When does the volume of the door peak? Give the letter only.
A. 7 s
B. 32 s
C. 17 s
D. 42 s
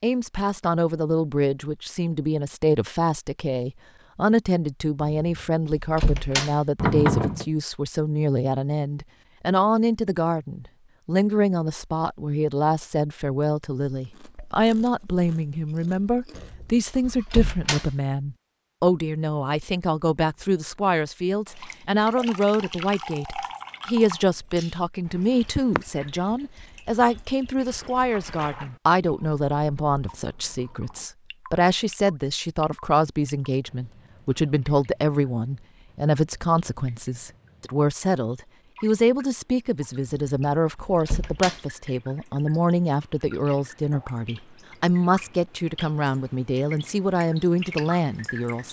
A.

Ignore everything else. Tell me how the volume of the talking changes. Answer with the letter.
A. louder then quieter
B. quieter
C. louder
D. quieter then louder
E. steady
E.